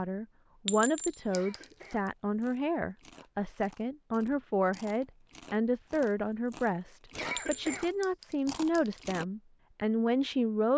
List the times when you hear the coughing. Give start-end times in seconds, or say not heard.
1.2-2.0, 7.1-7.9.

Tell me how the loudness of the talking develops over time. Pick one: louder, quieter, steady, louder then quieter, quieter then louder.
steady.